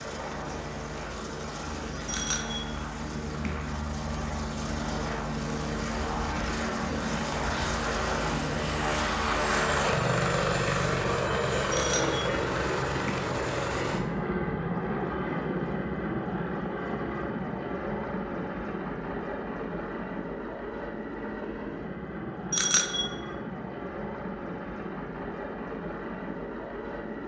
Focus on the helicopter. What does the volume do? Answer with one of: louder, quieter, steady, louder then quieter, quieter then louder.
louder then quieter.